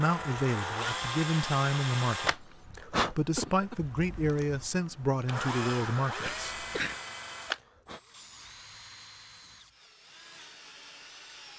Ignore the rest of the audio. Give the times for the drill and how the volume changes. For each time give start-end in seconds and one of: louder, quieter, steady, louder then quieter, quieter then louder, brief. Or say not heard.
0.0-11.5 quieter.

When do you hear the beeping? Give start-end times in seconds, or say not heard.
not heard.